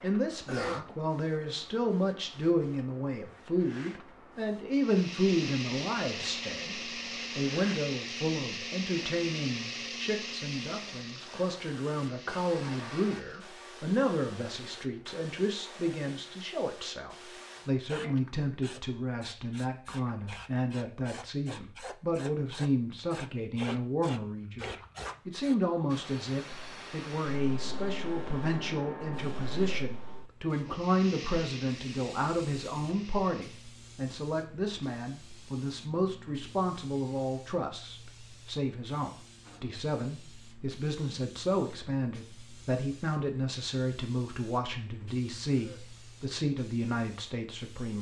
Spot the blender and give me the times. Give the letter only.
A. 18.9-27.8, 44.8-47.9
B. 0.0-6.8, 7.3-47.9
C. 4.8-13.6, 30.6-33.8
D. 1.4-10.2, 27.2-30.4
C.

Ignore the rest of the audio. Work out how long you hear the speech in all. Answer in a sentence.
You can hear the speech for 47 seconds altogether.